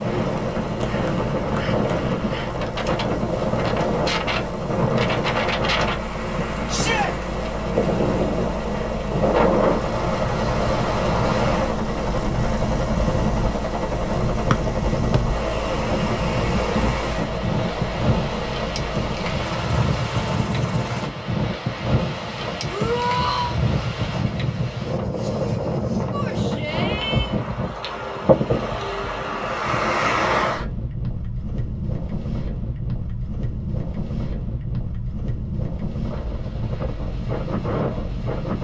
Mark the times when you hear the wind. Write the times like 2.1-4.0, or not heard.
0.0-38.5.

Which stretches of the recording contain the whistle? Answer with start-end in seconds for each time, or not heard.
14.5-15.2.